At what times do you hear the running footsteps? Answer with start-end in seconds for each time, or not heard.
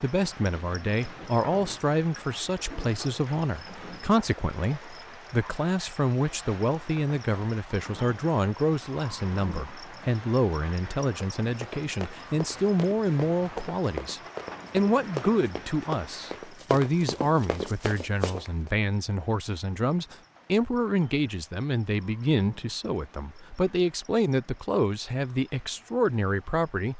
11.4-18.5.